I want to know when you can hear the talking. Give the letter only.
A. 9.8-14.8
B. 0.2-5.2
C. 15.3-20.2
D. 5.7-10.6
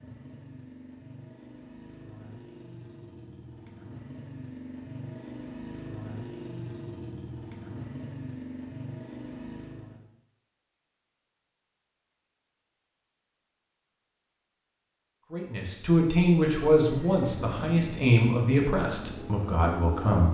C.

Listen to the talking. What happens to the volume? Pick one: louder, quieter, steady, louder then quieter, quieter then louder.
quieter.